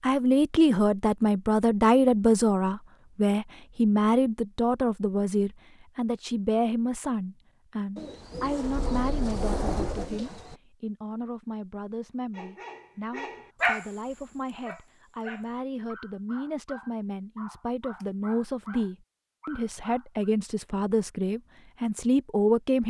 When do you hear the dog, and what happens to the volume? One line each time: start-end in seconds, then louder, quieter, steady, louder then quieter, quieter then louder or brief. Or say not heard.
12.3-20.4 quieter.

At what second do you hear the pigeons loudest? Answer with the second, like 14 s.
10 s.